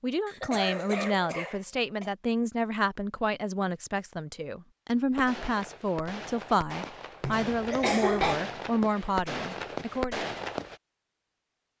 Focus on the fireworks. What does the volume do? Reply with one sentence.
The volume of the fireworks goes up.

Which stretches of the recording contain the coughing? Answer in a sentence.
The coughing can be heard from 0.2 to 2.1 s and from 7.2 to 8.4 s.